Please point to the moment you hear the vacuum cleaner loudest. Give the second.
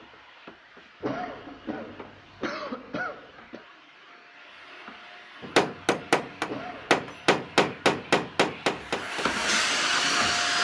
10 s.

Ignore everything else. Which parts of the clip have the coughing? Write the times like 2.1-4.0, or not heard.
1.0-3.6, 6.5-7.0.